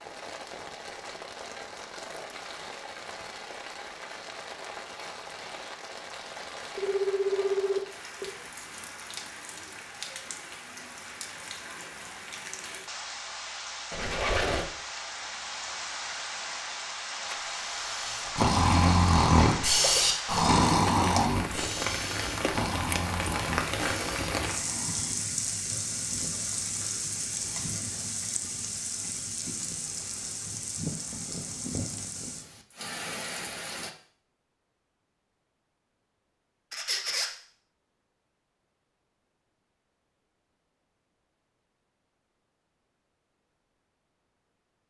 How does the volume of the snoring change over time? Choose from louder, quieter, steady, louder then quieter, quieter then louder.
quieter.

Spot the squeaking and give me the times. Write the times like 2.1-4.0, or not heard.
13.9-14.7, 36.7-37.3.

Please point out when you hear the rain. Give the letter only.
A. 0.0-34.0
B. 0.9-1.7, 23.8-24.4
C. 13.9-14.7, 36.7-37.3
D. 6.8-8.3
A.